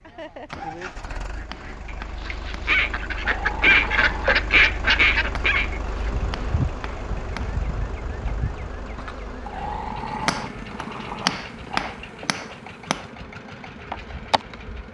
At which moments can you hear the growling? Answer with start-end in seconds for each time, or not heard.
3.2-4.3, 9.4-11.9.